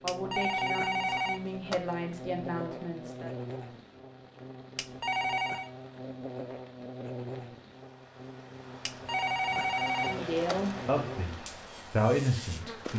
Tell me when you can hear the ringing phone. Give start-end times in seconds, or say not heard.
0.1-1.9, 4.8-5.7, 8.8-10.8.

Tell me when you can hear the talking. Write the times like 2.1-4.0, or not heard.
0.0-3.3, 10.1-12.9.